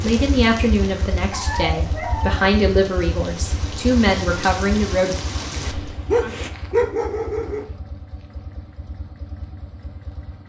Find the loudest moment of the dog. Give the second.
7 s.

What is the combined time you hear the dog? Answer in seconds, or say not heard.
3 s.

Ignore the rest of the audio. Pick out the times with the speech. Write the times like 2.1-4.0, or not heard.
0.0-5.2.